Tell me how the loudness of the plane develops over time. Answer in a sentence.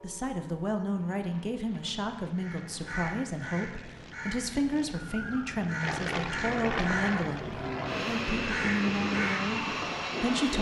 The volume of the plane goes up.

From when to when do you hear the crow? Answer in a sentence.
The crow can be heard from 2.4 to 10.2 s.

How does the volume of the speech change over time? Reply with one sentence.
The volume of the speech stays about the same.